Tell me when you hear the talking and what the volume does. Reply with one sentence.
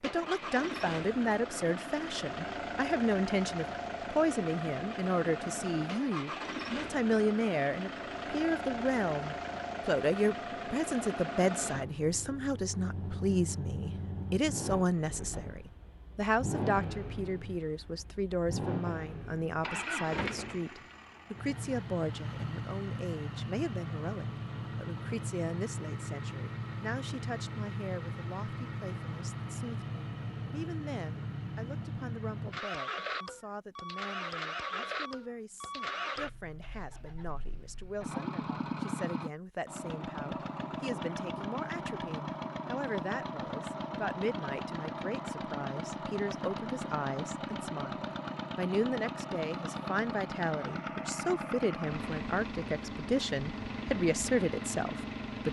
The talking can be heard from 0.0 to 55.4 s, getting quieter then louder.